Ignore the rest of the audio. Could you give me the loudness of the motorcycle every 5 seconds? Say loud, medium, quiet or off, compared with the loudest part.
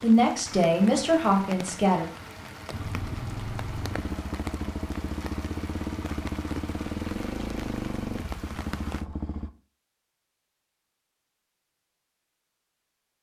loud, loud, off.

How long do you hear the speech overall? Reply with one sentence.
You can hear the speech for 2 seconds altogether.